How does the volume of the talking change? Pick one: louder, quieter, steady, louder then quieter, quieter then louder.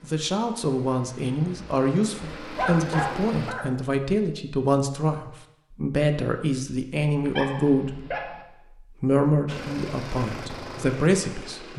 steady.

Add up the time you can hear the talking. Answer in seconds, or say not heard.
12 s.